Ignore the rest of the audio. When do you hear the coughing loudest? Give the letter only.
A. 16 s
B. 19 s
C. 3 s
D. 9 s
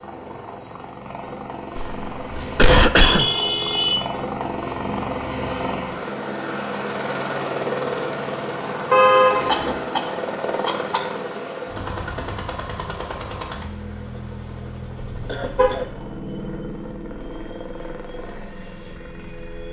C.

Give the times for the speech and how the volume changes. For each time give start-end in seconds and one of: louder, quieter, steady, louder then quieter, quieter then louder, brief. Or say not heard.
not heard.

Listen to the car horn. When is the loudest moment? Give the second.
9 s.